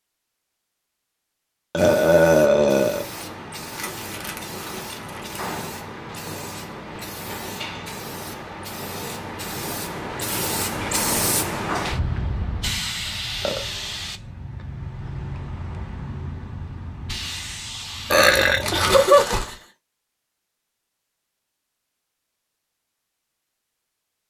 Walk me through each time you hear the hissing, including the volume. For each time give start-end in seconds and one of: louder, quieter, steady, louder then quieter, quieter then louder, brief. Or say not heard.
1.8-18.9 louder then quieter.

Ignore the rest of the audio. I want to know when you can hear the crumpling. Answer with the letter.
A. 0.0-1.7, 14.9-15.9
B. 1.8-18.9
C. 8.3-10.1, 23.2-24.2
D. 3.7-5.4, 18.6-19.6
D.